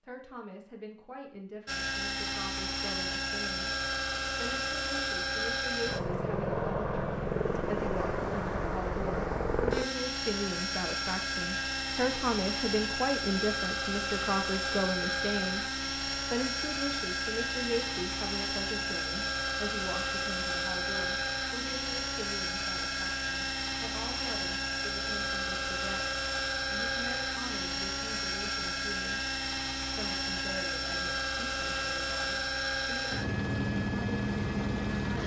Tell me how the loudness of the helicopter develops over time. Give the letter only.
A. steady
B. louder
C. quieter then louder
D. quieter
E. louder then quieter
A.